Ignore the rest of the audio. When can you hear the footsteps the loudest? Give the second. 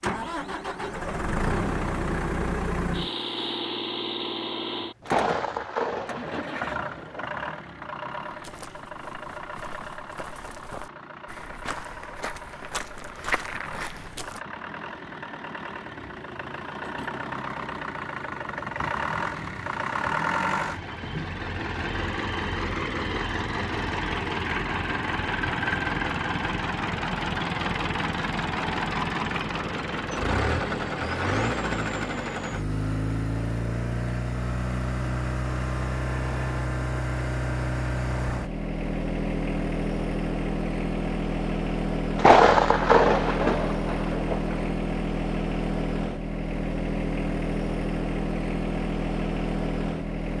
13 s.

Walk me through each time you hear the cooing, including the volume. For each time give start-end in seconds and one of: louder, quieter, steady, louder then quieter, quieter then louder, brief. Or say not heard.
not heard.